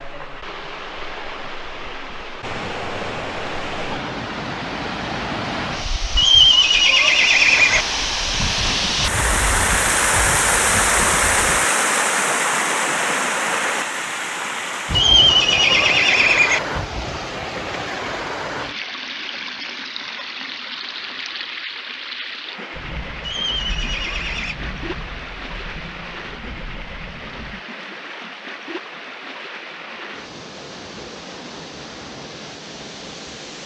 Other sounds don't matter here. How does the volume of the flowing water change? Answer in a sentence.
The volume of the flowing water goes up, then down.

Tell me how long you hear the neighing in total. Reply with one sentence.
The neighing can be heard for 5 seconds in total.